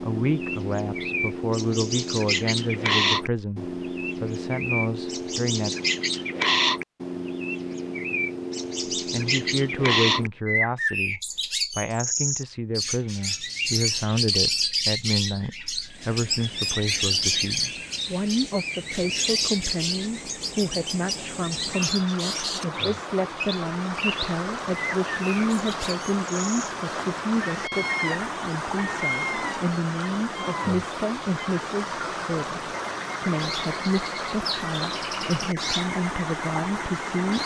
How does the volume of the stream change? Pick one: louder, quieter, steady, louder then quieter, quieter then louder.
louder.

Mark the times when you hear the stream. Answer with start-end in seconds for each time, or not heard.
15.8-37.4.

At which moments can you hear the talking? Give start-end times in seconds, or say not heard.
0.0-5.8, 9.1-37.4.